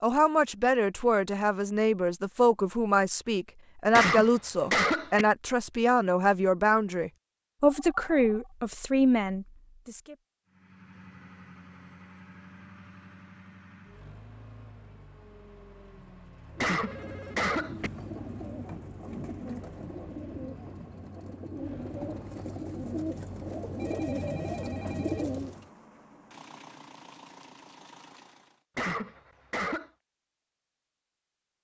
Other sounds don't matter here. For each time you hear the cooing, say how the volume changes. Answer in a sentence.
The cooing can be heard from 16.4 to 25.6 s, getting louder.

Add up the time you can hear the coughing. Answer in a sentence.
The coughing can be heard for 4 seconds in total.